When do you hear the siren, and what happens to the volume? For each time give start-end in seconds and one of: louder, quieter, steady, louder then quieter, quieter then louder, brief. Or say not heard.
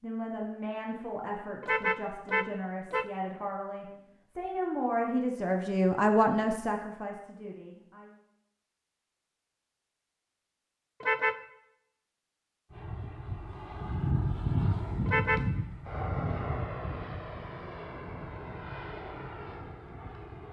not heard.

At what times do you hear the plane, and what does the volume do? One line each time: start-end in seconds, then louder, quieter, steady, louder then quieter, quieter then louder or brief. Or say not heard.
12.7-20.4 quieter.